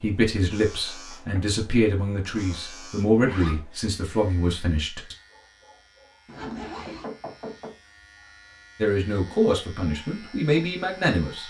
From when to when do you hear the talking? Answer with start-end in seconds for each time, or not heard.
0.0-5.2, 8.8-11.4.